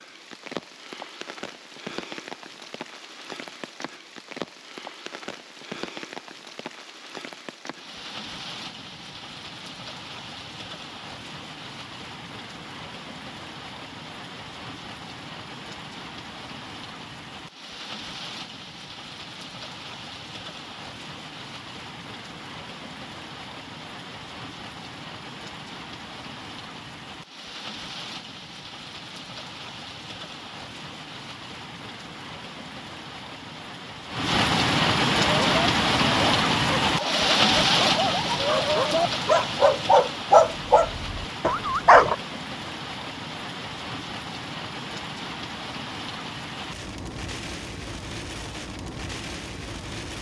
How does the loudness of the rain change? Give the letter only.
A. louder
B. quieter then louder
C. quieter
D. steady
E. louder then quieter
E.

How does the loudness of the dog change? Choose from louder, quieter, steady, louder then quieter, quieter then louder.
louder then quieter.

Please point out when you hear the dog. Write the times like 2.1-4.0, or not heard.
35.2-42.1.